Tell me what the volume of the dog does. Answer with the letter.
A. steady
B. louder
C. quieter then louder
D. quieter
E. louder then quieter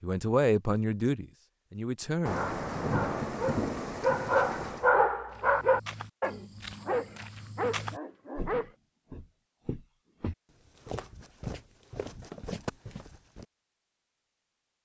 E.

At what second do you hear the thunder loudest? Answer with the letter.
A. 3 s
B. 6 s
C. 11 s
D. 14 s
A.